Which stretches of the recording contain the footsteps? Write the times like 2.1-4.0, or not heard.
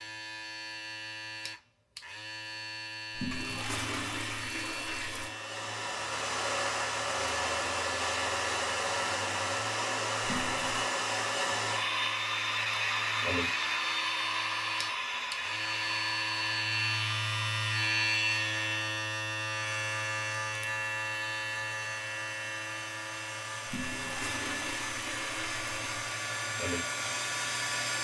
not heard.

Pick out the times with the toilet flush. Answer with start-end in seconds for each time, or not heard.
3.1-5.3, 10.2-10.8, 23.6-26.1.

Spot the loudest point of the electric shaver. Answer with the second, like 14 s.
18 s.